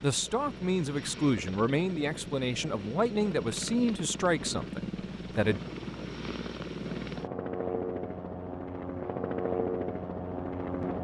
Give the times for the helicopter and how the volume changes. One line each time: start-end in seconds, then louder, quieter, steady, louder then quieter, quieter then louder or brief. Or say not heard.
0.0-10.9 louder.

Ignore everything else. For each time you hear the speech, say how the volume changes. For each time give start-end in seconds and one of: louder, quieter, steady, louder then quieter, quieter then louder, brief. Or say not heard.
0.0-5.6 steady.